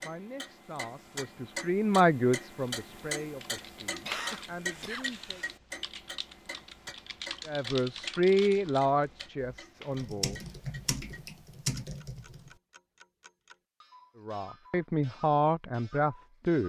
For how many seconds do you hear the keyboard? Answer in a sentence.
The keyboard can be heard for 10 seconds in total.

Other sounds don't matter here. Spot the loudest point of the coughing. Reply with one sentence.
The volume of the coughing peaks at 4 seconds.